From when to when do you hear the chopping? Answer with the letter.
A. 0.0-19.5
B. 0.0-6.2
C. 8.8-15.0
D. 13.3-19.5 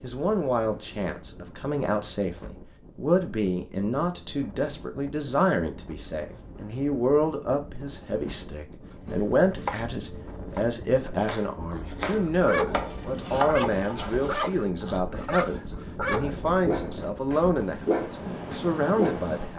C.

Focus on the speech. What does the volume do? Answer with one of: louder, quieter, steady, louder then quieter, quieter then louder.
steady.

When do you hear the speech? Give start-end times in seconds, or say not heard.
0.0-19.5.